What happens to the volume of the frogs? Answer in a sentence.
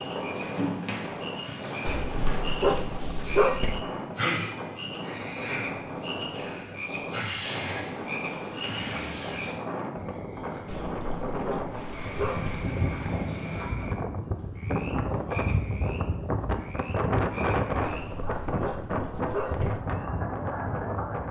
The volume of the frogs goes down.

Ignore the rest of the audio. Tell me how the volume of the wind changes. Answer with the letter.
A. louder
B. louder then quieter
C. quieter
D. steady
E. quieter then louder
A.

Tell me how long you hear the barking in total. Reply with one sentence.
The barking can be heard for 6 seconds in total.